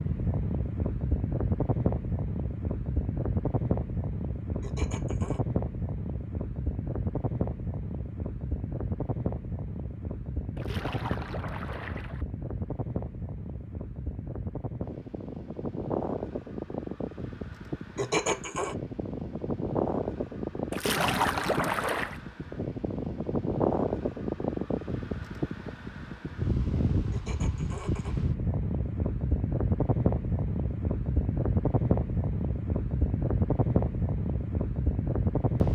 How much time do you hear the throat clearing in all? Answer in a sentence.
You can hear the throat clearing for 3 seconds altogether.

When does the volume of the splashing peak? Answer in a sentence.
The volume of the splashing peaks at 21 seconds.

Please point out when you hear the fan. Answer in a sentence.
You can hear the fan from 0.0 to 35.7 s.